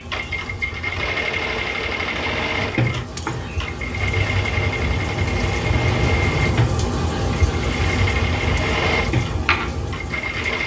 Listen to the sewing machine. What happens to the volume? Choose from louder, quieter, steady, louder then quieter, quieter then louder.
steady.